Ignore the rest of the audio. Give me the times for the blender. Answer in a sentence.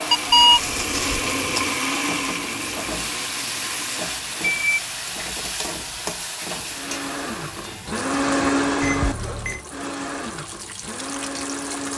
You can hear the blender from 0.0 to 5.0 s and from 6.7 to 11.9 s.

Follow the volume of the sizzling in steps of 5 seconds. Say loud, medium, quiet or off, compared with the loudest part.
loud, loud, medium.